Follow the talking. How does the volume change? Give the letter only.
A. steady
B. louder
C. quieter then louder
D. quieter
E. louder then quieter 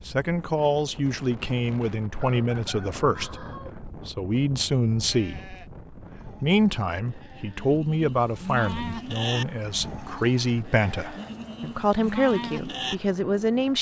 A.